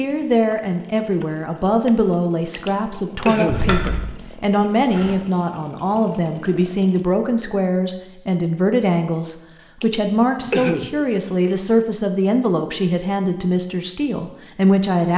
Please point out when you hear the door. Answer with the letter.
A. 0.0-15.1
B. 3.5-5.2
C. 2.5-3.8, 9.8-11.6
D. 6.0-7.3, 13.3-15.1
B.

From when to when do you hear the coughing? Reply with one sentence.
The coughing can be heard from 2.5 to 3.8 s and from 9.8 to 11.6 s.